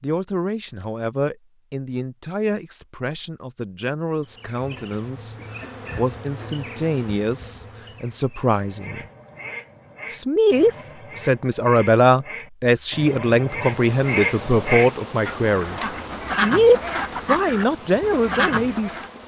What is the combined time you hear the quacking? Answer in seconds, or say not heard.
11 s.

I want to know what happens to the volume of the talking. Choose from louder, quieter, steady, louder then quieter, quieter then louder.
louder.